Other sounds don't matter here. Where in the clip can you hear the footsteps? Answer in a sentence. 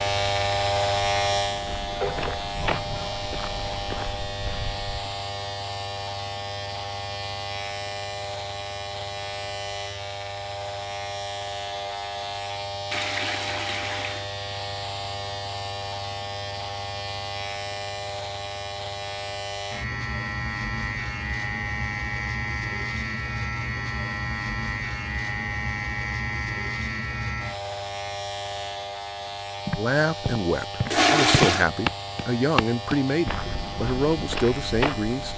The footsteps can be heard from 0.0 to 5.2 s and from 29.6 to 35.3 s.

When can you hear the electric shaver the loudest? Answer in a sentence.
The loudest moment of the electric shaver is at 1 second.